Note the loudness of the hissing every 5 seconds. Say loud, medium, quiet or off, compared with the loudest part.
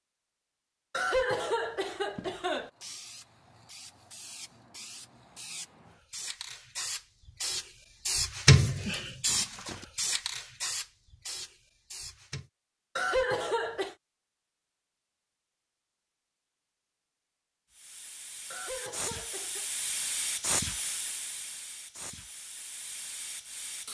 quiet, loud, medium, medium, medium.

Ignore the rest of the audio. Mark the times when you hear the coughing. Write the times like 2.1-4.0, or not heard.
0.9-2.7, 12.9-13.9, 18.5-19.6.